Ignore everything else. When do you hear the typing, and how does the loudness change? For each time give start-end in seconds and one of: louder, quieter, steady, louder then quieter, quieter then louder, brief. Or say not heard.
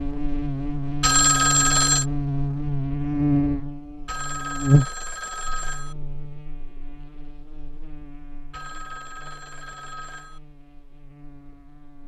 not heard.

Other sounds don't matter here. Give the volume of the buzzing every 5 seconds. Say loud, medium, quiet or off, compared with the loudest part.
loud, quiet, quiet.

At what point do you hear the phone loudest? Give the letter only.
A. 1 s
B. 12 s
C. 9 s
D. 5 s
A.